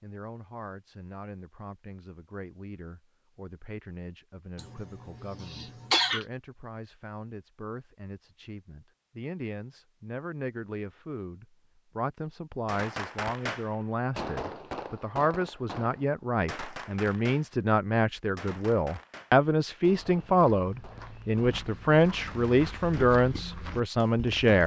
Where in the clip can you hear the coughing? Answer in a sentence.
You can hear the coughing from 4.5 to 6.2 s.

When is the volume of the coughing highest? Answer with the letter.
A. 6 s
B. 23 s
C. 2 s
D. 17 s
A.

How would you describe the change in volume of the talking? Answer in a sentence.
The volume of the talking goes up.